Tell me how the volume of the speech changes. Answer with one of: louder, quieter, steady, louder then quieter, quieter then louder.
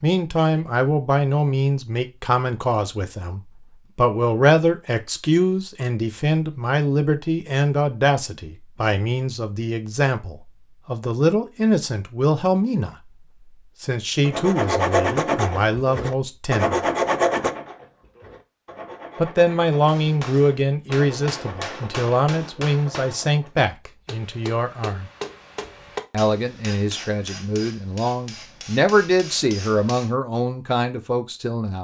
steady.